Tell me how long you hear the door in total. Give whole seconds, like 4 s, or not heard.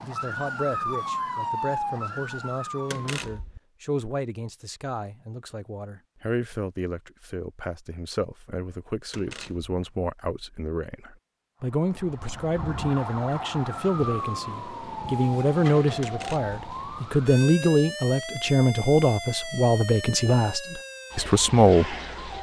2 s.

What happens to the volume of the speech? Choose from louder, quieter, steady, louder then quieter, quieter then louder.
louder.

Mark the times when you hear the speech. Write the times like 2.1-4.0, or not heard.
0.0-21.9.